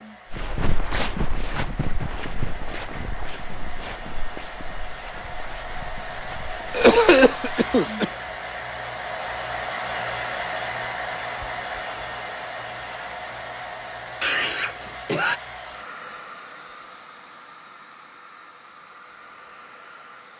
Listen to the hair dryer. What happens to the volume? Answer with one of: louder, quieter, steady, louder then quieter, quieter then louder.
louder then quieter.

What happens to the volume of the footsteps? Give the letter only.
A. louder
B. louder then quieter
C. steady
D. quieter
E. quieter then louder
D.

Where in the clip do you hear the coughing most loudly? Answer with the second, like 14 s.
7 s.